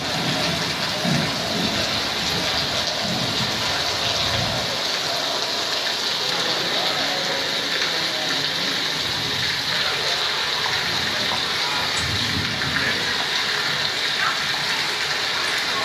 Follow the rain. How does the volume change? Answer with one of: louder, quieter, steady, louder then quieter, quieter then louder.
steady.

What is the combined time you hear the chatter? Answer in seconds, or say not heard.
16 s.